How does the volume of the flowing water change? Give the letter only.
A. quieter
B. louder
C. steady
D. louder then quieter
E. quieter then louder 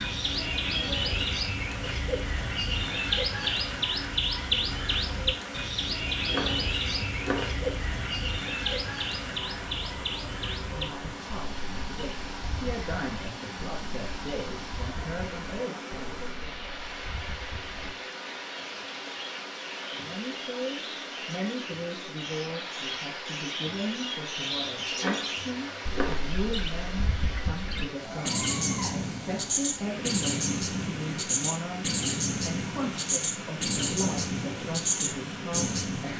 C.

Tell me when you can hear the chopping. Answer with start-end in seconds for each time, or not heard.
6.2-7.5, 24.9-26.2.